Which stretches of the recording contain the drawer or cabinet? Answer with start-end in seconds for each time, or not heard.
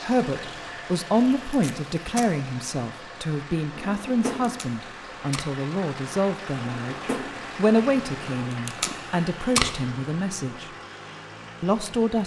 3.8-4.6, 6.5-7.5.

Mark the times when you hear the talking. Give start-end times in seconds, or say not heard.
0.0-10.7, 11.6-12.2.